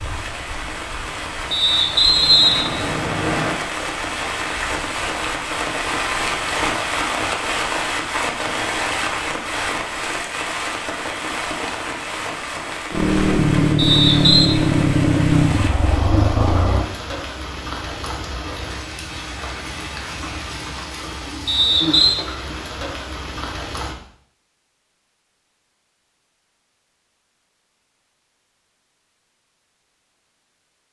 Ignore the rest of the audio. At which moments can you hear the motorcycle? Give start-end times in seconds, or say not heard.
12.9-16.9.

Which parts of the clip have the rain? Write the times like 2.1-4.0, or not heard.
0.0-23.9.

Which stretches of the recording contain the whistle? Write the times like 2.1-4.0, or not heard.
1.5-3.5, 13.8-14.5, 21.4-22.1.